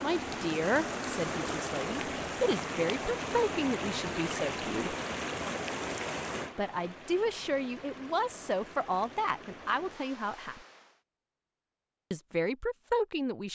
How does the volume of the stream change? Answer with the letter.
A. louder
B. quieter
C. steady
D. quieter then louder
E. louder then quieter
B.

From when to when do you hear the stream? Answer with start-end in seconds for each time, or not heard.
0.0-11.0.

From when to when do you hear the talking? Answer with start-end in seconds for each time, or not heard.
0.0-5.0, 6.5-10.6, 12.1-13.5.